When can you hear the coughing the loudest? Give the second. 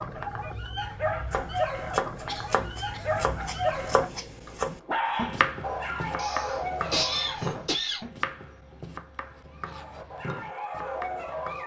7 s.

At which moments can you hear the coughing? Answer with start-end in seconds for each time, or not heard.
2.2-3.2, 6.2-8.1.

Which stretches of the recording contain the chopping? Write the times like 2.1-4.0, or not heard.
1.3-11.6.